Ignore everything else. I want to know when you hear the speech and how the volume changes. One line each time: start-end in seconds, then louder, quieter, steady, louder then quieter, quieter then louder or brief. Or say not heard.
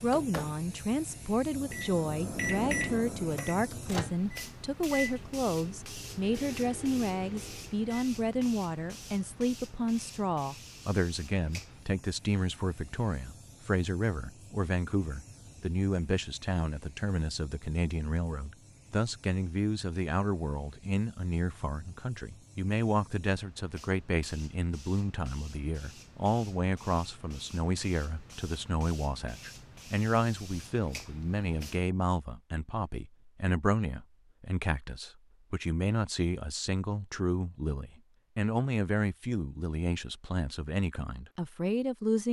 0.0-42.2 steady.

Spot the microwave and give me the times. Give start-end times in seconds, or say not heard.
0.1-8.1.